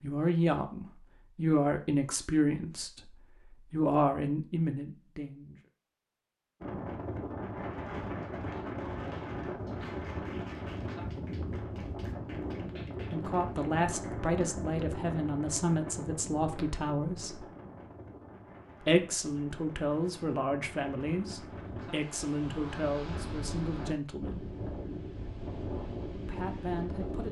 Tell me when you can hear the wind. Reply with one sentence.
You can hear the wind from 6.6 to 27.2 s.